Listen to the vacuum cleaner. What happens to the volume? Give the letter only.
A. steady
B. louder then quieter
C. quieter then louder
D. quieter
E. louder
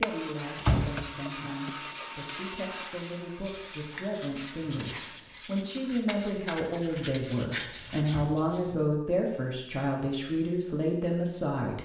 D.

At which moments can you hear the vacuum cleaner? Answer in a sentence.
The vacuum cleaner can be heard from 0.0 to 5.2 s.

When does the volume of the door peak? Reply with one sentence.
The volume of the door peaks at 1 second.